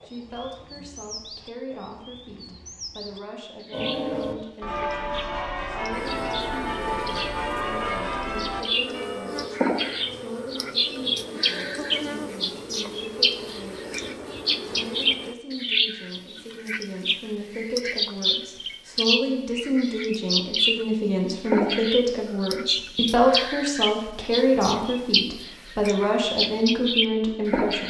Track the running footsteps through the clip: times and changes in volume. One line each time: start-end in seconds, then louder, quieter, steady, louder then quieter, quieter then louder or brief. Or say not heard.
not heard.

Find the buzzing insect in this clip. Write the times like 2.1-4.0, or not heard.
5.9-15.3.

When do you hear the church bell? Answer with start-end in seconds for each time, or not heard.
3.7-9.6.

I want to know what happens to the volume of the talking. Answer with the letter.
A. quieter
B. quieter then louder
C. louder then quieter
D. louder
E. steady
D.